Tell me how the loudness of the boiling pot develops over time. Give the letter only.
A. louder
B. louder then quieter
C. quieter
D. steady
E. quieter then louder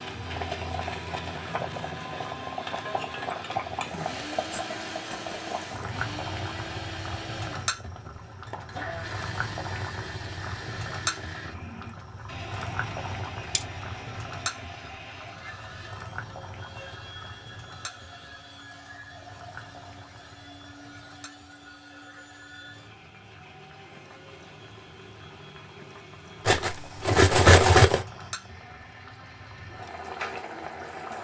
E.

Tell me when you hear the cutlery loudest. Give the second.
28 s.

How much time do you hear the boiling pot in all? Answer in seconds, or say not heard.
31 s.